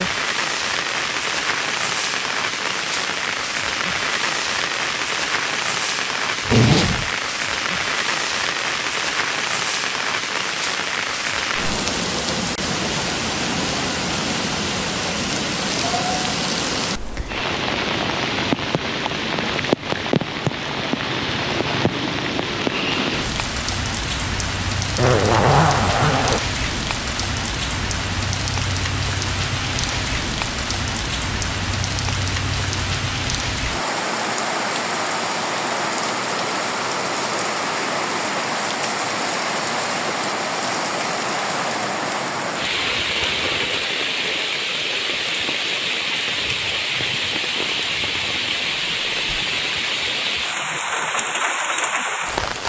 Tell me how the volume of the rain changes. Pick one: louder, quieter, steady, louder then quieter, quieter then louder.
steady.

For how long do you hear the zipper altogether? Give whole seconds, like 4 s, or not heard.
3 s.